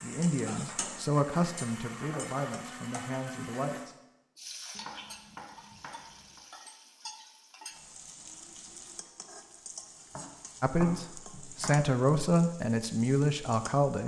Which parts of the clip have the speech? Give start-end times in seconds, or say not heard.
0.0-4.0, 10.6-14.0.